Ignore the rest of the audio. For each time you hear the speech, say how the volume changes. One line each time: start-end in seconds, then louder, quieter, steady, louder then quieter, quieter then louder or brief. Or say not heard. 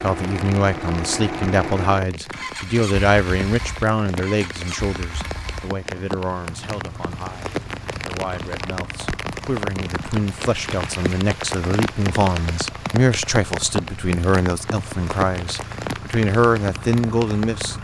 0.0-17.7 quieter then louder.